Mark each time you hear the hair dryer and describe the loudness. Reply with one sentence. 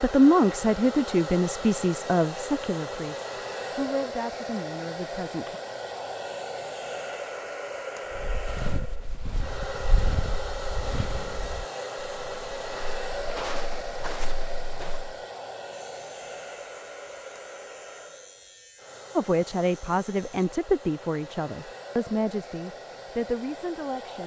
The hair dryer can be heard from 0.0 to 24.2 s, getting quieter.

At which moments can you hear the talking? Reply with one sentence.
You can hear the talking from 0.0 to 5.5 s and from 19.1 to 24.2 s.